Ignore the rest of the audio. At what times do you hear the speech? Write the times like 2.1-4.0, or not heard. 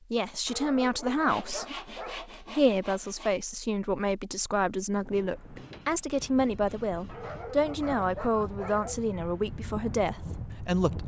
0.1-11.0.